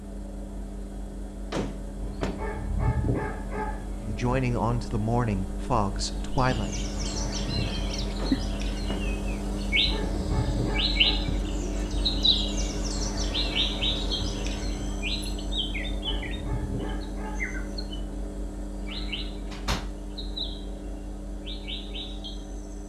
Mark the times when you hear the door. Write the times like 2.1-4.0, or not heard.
1.5-2.4, 8.2-9.1, 18.9-19.9.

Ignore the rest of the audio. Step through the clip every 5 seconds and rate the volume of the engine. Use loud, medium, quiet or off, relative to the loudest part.
medium, loud, loud, loud, medium.